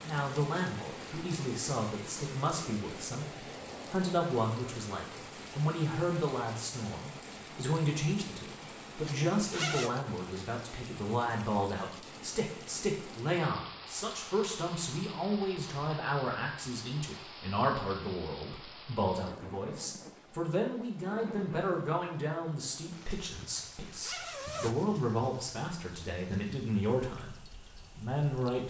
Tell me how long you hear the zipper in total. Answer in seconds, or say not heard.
2 s.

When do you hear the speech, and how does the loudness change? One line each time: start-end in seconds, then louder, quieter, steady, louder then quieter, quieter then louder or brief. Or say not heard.
0.1-28.6 steady.